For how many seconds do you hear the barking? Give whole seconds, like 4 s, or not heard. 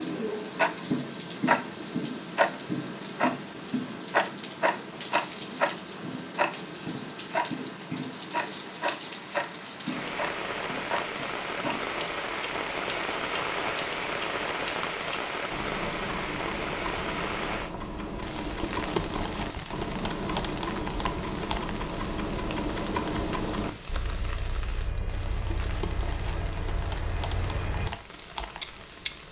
not heard.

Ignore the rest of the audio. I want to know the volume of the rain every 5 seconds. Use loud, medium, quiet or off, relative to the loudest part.
quiet, medium, loud, loud, medium, medium.